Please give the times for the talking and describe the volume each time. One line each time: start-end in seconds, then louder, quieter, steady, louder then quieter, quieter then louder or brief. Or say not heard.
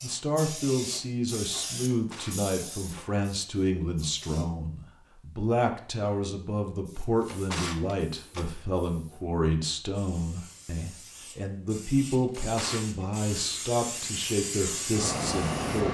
0.0-15.8 steady.